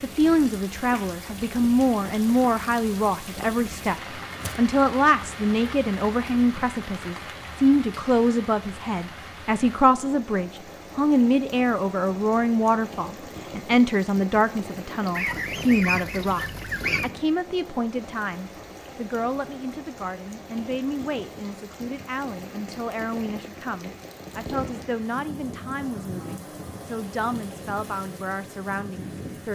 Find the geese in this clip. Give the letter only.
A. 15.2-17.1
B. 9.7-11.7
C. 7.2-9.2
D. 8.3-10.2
A.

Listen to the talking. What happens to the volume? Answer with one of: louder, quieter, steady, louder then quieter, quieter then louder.
quieter.